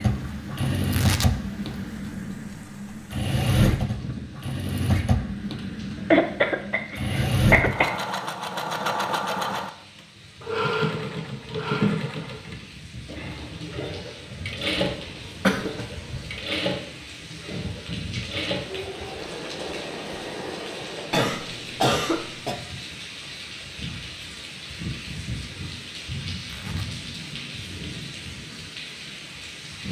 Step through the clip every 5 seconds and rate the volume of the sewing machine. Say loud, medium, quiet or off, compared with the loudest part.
loud, loud, loud, medium, medium, off.